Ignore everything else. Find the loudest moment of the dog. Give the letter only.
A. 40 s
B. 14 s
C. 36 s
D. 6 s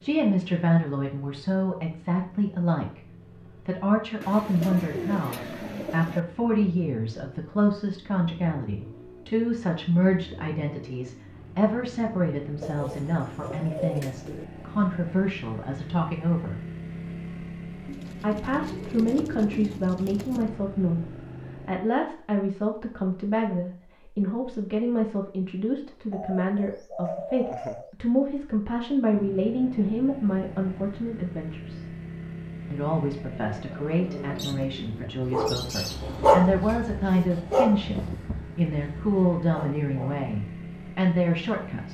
C.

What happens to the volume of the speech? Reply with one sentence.
The volume of the speech stays about the same.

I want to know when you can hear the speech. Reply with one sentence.
You can hear the speech from 0.0 to 3.0 s, from 3.6 to 16.6 s, from 18.2 to 31.9 s and from 32.7 to 41.8 s.